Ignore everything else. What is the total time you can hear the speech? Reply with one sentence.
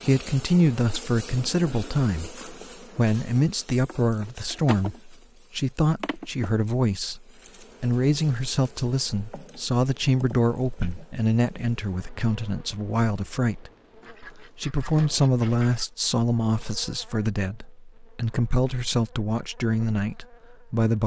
You can hear the speech for 20 seconds altogether.